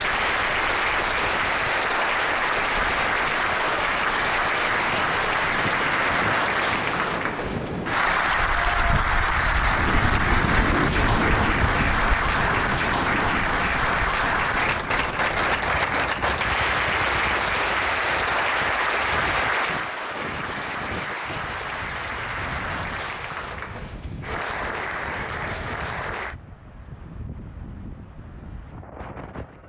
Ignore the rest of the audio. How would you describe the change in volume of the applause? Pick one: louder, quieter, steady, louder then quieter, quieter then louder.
quieter.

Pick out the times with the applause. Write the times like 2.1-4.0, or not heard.
0.0-26.4.